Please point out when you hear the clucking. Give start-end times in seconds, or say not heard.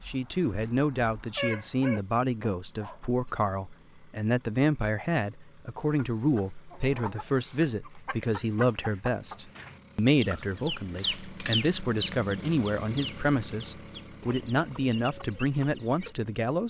5.8-16.1.